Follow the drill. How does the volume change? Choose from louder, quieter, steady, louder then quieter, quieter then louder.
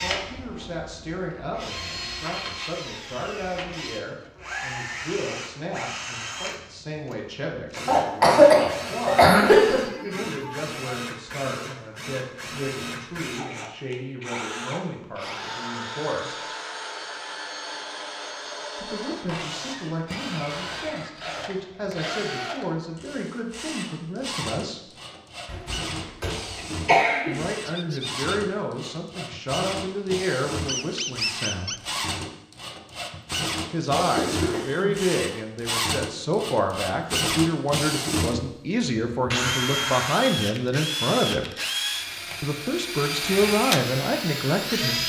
louder.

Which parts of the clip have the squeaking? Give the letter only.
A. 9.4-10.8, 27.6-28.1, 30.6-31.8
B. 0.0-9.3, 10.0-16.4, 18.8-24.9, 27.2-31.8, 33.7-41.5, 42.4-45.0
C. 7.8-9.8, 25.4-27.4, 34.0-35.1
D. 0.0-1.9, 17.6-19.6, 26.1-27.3
A.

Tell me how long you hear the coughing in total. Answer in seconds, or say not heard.
5 s.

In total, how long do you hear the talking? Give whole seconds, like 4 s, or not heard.
37 s.